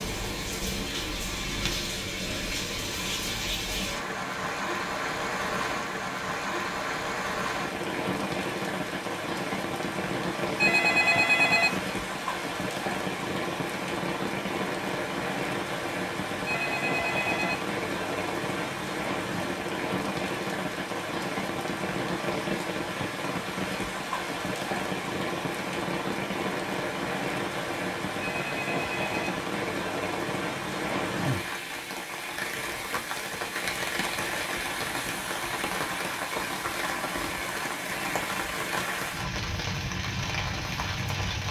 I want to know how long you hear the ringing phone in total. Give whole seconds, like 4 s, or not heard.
4 s.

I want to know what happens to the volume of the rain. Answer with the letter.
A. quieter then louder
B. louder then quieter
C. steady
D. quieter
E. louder
C.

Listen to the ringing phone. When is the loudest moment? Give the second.
11 s.